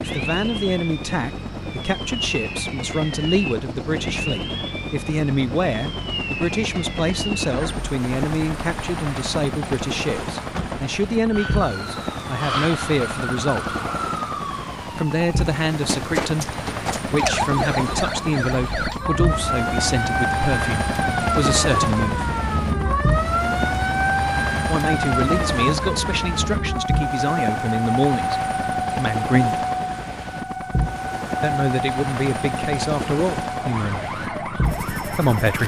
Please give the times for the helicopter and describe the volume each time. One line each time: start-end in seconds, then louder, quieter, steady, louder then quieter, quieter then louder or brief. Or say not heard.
0.0-35.6 steady.